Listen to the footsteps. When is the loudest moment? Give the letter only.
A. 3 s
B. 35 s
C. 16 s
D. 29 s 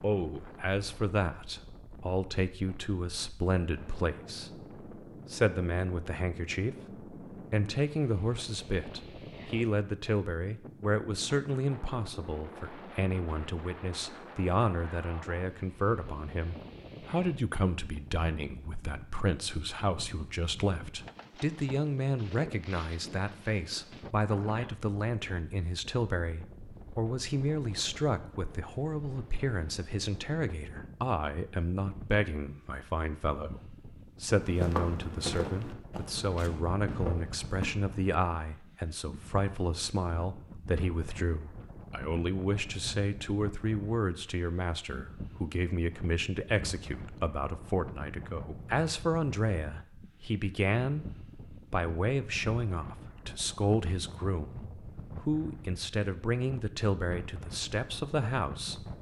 B.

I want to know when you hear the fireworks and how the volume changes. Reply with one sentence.
You can't hear the fireworks here.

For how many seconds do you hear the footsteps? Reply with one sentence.
The footsteps can be heard for 3 seconds in total.